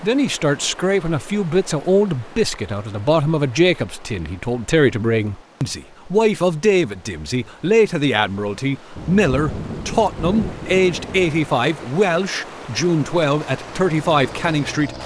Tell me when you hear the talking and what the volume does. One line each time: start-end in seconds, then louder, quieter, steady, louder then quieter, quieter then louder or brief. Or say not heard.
0.0-14.9 steady.